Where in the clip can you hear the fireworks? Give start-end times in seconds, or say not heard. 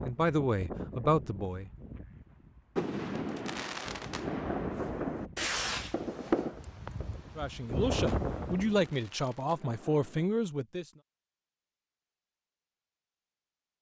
2.8-10.3.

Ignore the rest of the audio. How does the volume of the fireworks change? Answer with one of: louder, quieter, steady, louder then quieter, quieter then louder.
quieter.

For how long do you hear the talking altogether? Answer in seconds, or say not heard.
5 s.